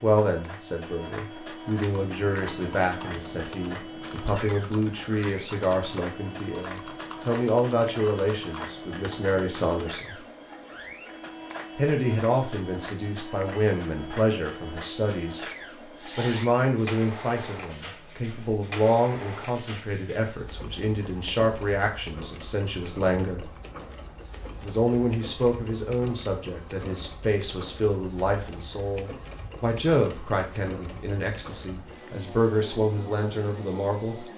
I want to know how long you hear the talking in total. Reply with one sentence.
The talking can be heard for 31 seconds in total.